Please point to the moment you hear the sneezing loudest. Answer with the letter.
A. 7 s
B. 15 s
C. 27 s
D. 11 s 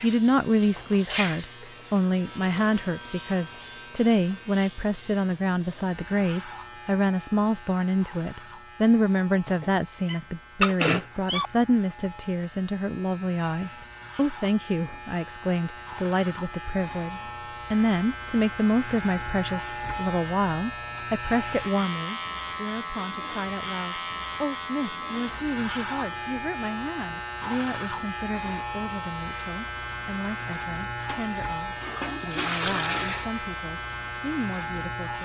D.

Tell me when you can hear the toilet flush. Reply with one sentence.
The toilet flush can be heard from 30.9 to 33.3 s.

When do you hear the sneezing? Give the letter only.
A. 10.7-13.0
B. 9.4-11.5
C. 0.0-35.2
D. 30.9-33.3
B.